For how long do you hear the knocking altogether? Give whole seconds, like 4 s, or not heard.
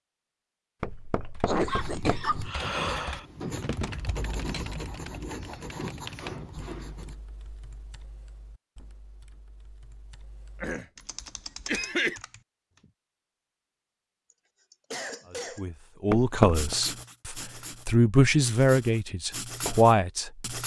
2 s.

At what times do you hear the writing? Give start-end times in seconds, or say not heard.
1.6-7.2, 16.5-20.6.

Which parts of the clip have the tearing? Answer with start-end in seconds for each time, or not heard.
not heard.